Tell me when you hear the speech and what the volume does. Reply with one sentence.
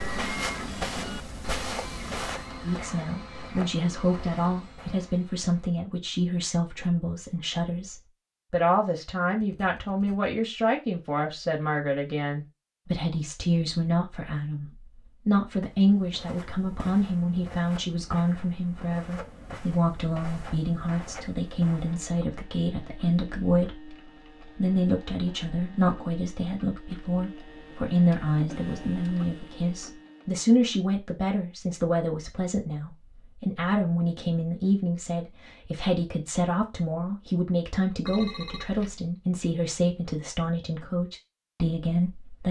You can hear the speech from 2.6 to 42.4 s, at a steady volume.